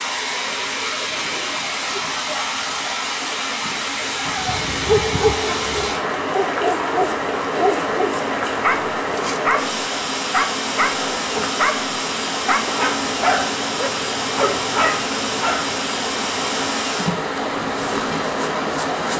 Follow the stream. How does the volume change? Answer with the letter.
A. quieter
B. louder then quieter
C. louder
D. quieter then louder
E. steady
E.